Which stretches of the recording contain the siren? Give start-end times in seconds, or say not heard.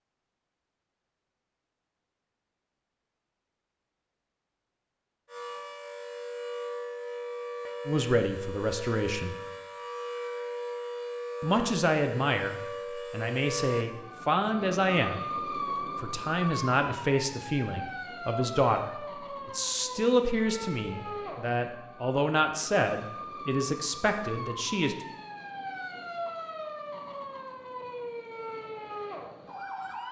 5.2-30.0.